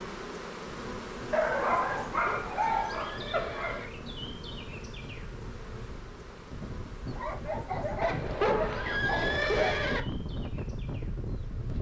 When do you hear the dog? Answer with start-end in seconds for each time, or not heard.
1.3-3.9, 7.1-9.8.